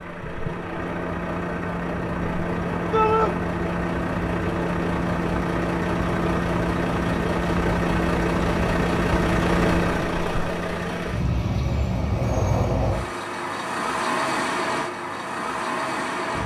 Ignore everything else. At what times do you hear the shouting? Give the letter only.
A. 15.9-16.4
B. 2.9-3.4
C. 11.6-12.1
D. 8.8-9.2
B.